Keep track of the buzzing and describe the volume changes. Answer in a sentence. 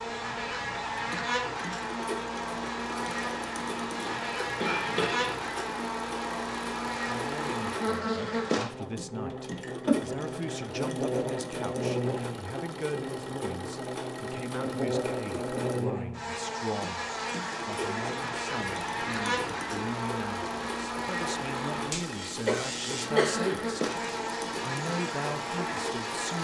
The volume of the buzzing stays about the same.